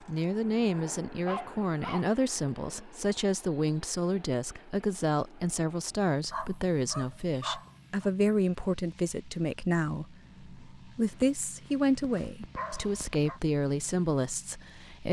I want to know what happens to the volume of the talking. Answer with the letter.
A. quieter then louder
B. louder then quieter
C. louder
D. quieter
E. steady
E.